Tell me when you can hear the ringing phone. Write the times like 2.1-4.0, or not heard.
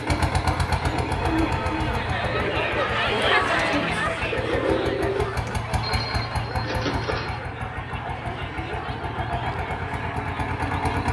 1.1-2.5, 5.8-7.4.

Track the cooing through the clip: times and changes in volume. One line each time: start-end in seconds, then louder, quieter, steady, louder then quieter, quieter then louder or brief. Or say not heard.
0.0-5.6 louder.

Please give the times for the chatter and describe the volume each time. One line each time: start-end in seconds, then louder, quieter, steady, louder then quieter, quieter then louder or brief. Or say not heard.
0.0-10.9 louder then quieter.